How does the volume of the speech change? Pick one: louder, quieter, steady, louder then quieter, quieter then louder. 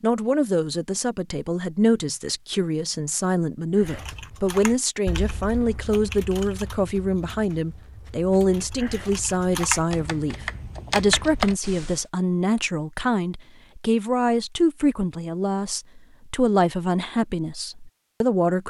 steady.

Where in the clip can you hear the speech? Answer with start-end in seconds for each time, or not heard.
0.0-18.6.